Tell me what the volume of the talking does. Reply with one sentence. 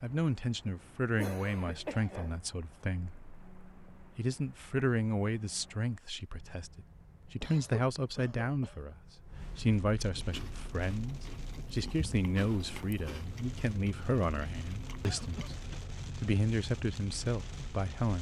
The volume of the talking stays about the same.